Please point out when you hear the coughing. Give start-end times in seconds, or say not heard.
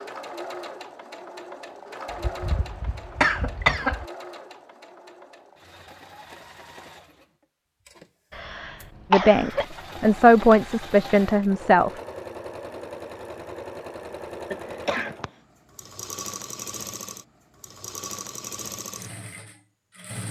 2.0-4.0, 8.3-9.7, 14.5-15.3.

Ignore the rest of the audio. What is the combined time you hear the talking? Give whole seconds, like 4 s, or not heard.
3 s.